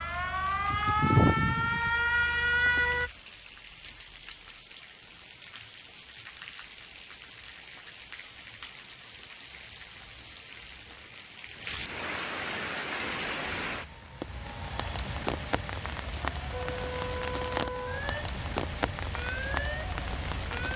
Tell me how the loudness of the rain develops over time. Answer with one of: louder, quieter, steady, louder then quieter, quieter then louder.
louder.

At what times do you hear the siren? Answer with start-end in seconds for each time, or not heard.
0.0-3.1, 16.5-20.7.